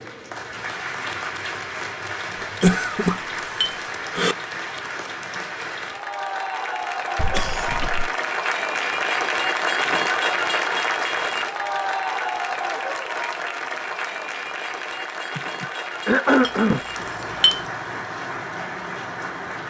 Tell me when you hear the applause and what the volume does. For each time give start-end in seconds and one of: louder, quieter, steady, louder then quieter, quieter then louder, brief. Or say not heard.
0.0-19.6 louder then quieter.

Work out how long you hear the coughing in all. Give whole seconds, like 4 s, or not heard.
4 s.